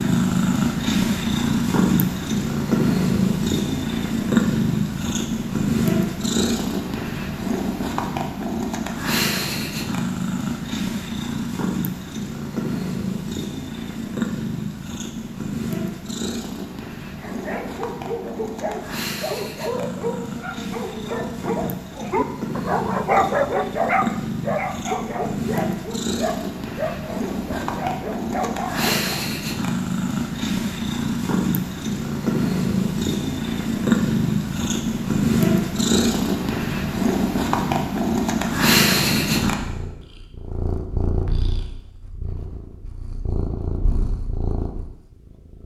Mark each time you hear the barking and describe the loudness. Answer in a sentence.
The barking can be heard from 17.2 to 29.1 s, getting louder then quieter.